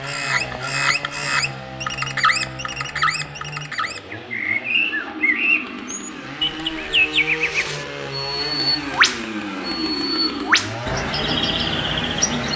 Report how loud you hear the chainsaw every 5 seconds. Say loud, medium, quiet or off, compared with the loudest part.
medium, loud, loud.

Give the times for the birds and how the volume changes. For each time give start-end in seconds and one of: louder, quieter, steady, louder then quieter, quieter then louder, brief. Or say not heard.
0.0-12.5 steady.